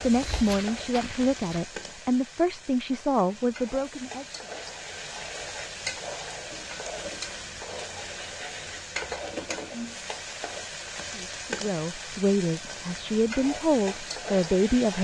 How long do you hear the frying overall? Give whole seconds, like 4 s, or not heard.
15 s.